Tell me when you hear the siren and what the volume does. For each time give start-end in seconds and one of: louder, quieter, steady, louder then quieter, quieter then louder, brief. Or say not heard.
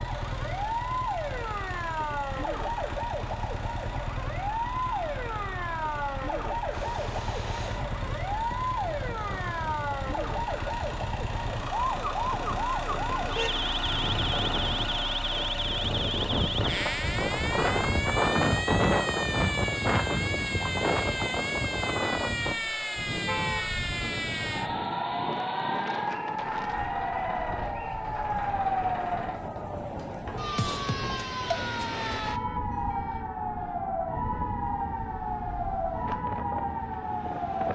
0.0-37.7 steady.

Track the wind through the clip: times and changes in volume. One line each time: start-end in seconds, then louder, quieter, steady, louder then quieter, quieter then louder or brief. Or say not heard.
6.7-37.7 louder then quieter.